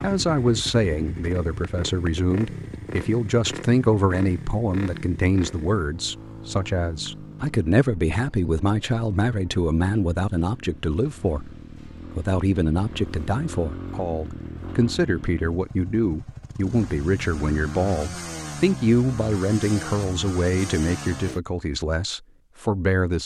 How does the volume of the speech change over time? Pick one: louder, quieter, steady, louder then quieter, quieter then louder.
steady.